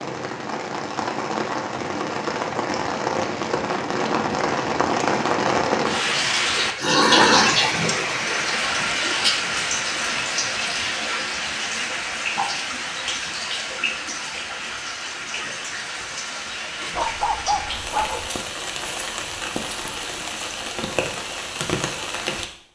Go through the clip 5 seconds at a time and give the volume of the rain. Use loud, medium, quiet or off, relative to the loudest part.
medium, loud, medium, medium, medium.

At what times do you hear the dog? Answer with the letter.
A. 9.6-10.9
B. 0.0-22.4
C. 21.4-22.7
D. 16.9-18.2
D.